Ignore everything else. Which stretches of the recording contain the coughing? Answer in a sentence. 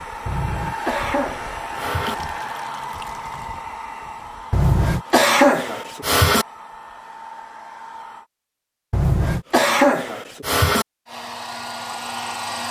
The coughing can be heard from 0.2 to 2.1 s, from 4.5 to 6.5 s and from 8.9 to 10.8 s.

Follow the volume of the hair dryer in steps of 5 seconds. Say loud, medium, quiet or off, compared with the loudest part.
loud, medium, loud.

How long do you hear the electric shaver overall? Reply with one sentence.
The electric shaver can't be heard in this clip.